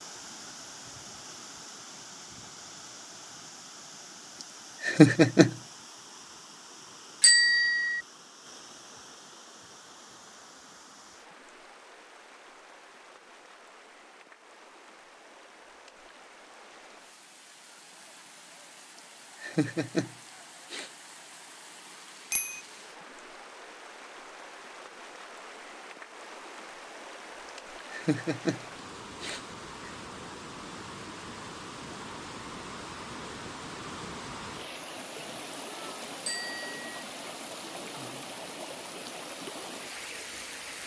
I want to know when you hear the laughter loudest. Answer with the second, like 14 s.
5 s.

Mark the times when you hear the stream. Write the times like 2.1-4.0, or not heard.
0.0-40.8.